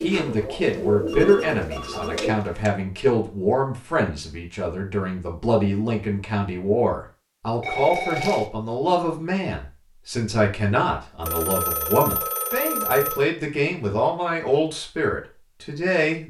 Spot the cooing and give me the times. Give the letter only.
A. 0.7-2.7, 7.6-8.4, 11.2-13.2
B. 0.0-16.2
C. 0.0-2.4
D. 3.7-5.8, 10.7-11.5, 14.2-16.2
C.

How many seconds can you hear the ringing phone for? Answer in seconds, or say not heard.
5 s.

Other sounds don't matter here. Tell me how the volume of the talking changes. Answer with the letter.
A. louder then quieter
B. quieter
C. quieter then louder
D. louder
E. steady
E.